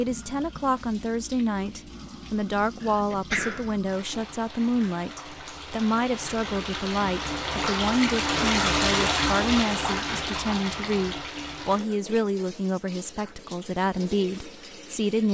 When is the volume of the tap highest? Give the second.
9 s.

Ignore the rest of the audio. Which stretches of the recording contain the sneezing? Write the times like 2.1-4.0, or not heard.
2.8-3.7.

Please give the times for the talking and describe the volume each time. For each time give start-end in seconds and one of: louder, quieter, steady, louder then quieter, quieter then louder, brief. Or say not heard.
0.0-15.3 steady.